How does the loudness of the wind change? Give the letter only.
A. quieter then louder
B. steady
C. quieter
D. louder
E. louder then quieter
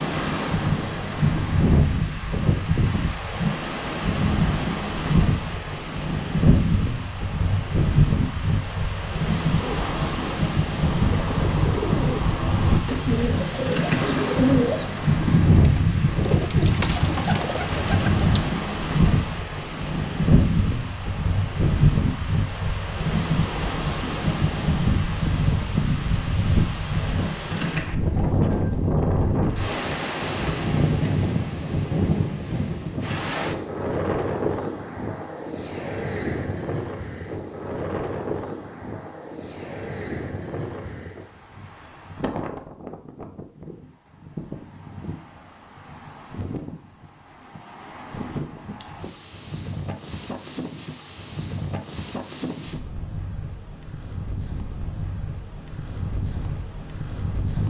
C.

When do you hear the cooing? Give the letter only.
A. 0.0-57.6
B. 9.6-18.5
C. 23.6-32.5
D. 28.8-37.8
B.